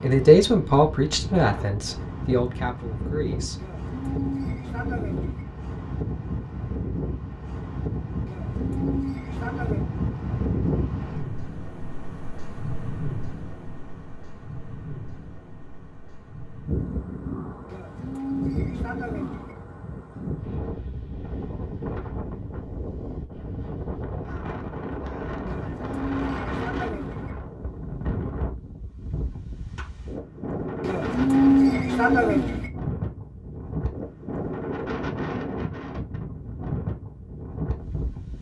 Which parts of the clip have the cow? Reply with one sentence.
You can hear the cow from 3.5 to 5.5 s, from 8.2 to 9.8 s, from 17.6 to 19.6 s, from 25.4 to 27.3 s and from 30.8 to 32.7 s.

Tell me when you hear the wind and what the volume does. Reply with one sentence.
You can hear the wind from 0.0 to 38.3 s, at a steady volume.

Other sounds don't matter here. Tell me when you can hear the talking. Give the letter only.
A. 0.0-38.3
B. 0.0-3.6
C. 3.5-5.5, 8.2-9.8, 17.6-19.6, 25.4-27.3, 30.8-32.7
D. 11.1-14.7
B.